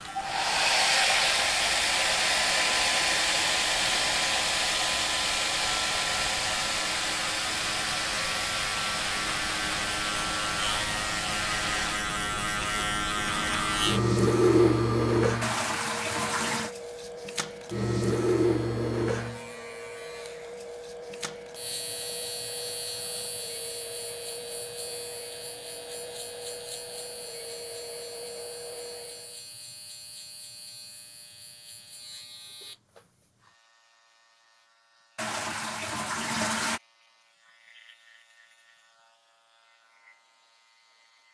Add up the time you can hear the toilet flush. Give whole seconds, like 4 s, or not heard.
3 s.